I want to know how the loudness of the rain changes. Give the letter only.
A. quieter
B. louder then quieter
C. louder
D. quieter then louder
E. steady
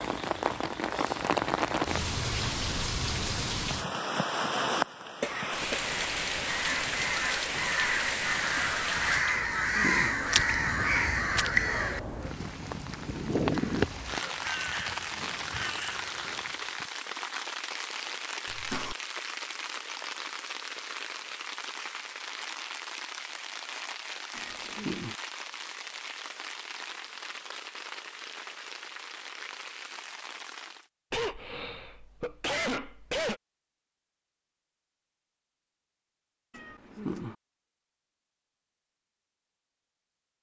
A.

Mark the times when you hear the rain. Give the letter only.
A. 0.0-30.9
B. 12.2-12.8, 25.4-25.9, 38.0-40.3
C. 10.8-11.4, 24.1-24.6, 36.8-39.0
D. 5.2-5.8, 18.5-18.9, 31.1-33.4
A.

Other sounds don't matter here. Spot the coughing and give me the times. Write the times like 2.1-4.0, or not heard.
5.2-5.8, 18.5-18.9, 31.1-33.4.